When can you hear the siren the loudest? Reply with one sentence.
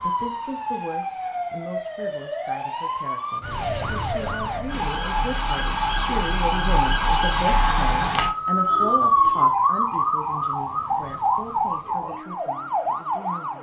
The loudest moment of the siren is at 9 seconds.